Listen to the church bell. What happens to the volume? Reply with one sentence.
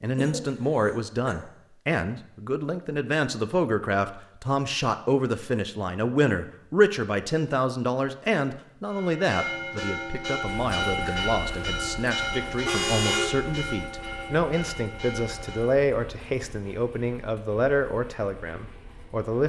The volume of the church bell goes down.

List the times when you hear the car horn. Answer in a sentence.
The car horn can be heard from 12.4 to 13.5 s.